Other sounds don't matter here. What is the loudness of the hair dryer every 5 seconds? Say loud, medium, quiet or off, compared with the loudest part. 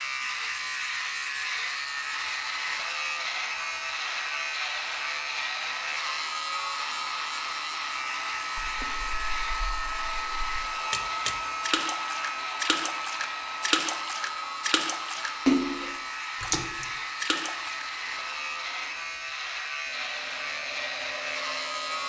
medium, loud, loud, medium, medium.